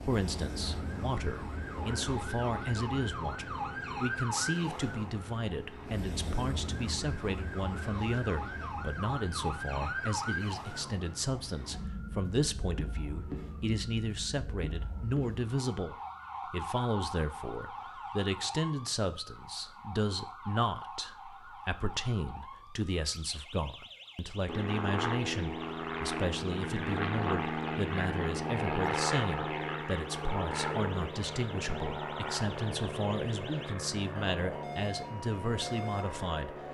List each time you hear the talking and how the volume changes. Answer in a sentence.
You can hear the talking from 0.0 to 36.7 s, at a steady volume.